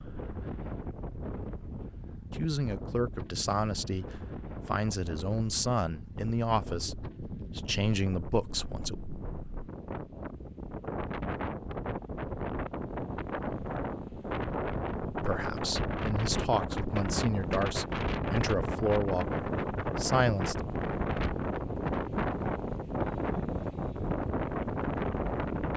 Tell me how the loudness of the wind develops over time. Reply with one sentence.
The loudness of the wind goes up.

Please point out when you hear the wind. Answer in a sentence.
The wind can be heard from 0.0 to 25.7 s.